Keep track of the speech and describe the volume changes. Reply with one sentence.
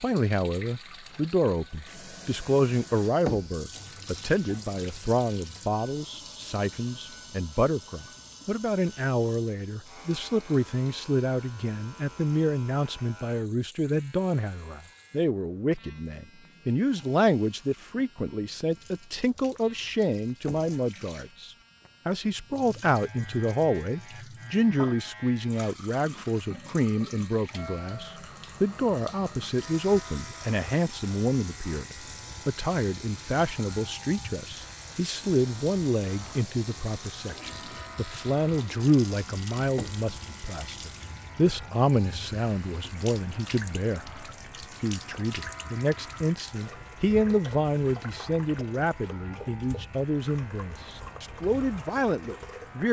The volume of the speech stays about the same.